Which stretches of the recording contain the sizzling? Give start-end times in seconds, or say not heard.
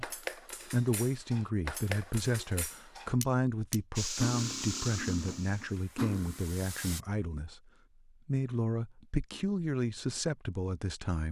4.0-7.0.